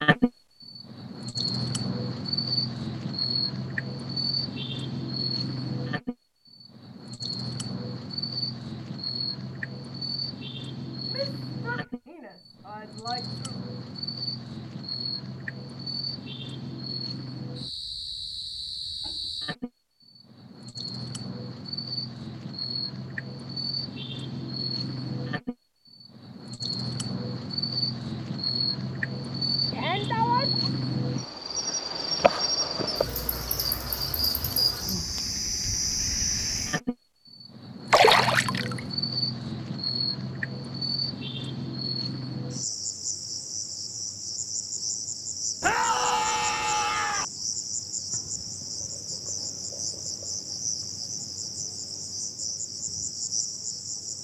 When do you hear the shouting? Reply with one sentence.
The shouting can be heard from 11.1 to 13.6 s, from 29.7 to 30.7 s and from 45.6 to 47.2 s.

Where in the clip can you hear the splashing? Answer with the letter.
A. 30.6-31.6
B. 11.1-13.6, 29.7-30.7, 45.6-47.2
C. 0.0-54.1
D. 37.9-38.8
D.